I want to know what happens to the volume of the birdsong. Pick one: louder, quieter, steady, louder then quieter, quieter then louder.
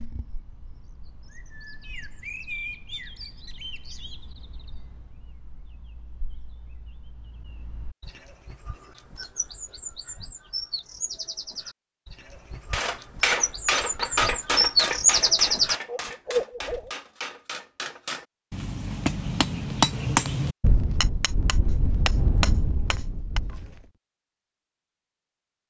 quieter then louder.